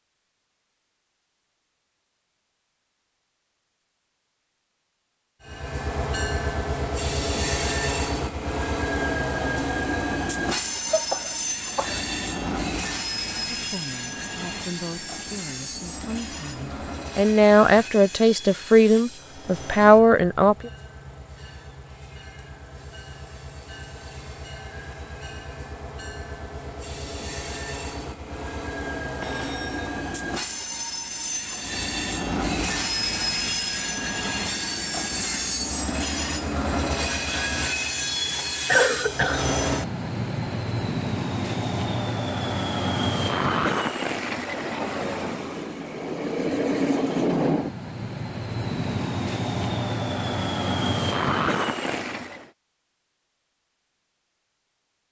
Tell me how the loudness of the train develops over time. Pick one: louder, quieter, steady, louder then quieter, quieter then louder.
quieter then louder.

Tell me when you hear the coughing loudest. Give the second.
39 s.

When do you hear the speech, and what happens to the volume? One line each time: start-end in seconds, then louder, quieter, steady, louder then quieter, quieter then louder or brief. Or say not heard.
13.5-20.7 louder.